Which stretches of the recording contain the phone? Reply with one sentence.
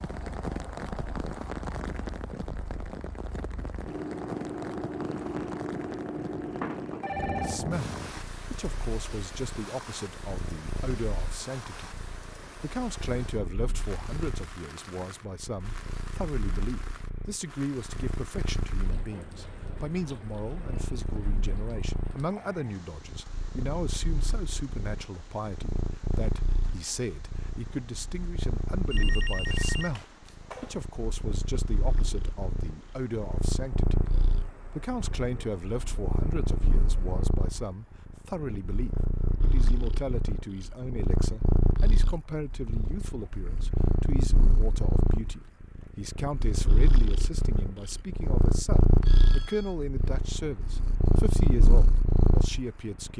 The phone can be heard from 7.0 to 7.7 s, from 28.9 to 30.8 s and from 49.0 to 49.8 s.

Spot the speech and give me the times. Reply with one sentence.
The speech can be heard from 7.3 to 11.9 s, from 12.6 to 34.1 s and from 34.8 to 53.1 s.